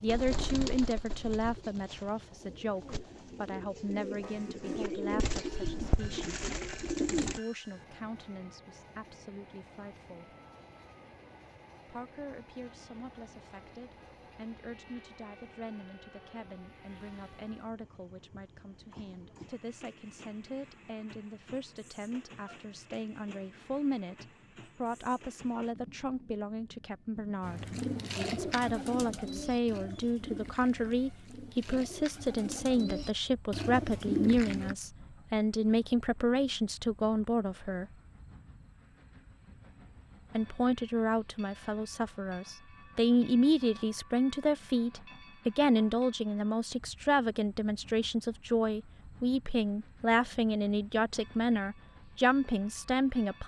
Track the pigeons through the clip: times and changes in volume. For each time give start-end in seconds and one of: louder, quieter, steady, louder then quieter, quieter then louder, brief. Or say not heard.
0.1-7.4 quieter then louder
27.4-34.8 quieter then louder.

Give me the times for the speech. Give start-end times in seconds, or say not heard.
0.0-10.3, 11.8-27.6, 28.3-37.9, 40.4-53.4.